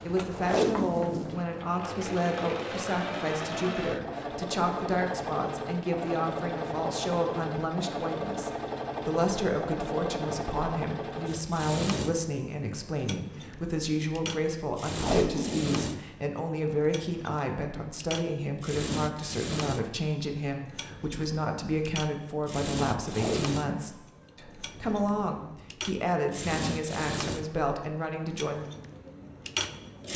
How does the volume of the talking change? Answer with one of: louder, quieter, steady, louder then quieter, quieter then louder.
steady.